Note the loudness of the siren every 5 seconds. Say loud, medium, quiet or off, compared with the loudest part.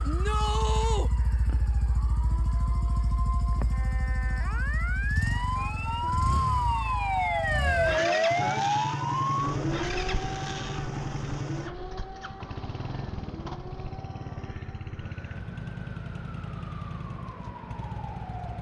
quiet, loud, quiet, quiet.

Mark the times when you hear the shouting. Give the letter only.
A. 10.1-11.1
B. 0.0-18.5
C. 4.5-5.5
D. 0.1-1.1
D.